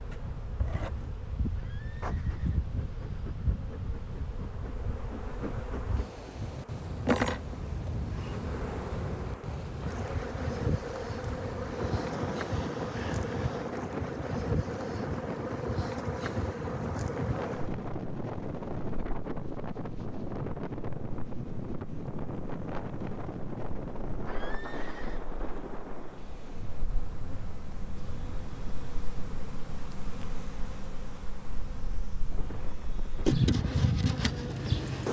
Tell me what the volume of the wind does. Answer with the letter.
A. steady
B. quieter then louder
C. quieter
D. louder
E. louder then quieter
E.